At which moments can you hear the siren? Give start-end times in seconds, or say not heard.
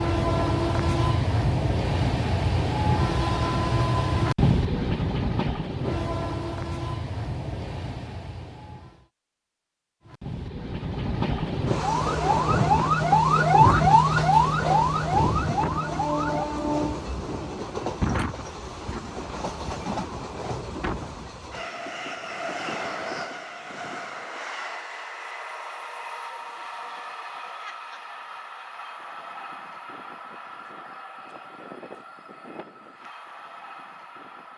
11.8-16.4.